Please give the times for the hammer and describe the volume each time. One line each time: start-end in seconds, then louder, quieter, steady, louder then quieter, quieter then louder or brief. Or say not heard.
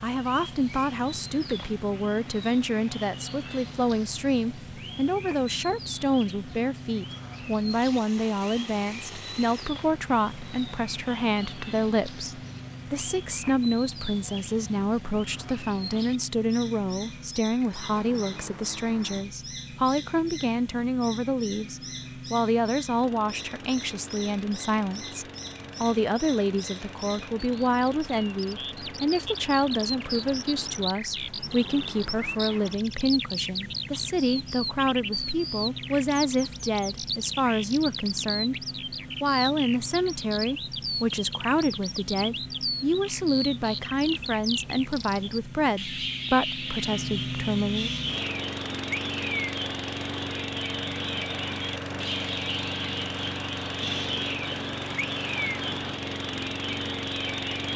not heard.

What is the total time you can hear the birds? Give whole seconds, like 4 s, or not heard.
58 s.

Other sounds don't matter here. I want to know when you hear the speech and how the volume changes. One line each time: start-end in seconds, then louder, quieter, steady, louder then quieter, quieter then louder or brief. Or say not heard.
0.0-38.5 steady
39.2-48.0 steady.